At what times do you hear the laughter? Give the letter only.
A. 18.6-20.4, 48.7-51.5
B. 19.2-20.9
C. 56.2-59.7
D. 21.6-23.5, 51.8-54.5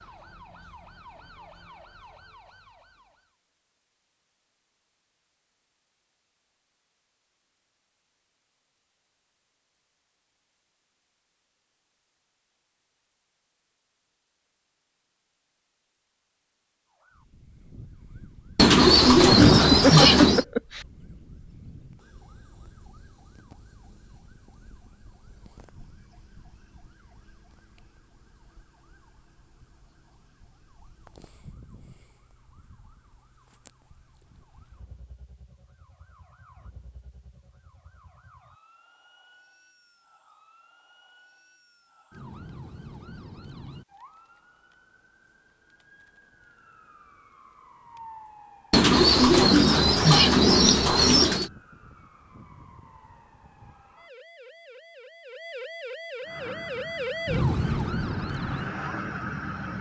B.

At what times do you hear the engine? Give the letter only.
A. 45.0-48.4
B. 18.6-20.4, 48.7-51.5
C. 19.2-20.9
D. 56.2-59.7
D.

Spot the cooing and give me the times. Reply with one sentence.
You can hear the cooing from 18.6 to 20.4 s and from 48.7 to 51.5 s.